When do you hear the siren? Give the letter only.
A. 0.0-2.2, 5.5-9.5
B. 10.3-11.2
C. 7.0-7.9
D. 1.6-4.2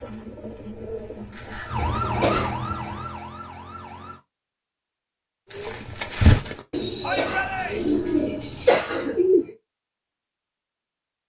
D.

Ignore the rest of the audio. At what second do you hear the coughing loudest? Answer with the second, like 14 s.
9 s.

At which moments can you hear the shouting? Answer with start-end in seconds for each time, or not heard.
7.0-7.9.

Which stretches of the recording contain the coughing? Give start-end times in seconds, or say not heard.
2.0-3.0, 6.7-9.2.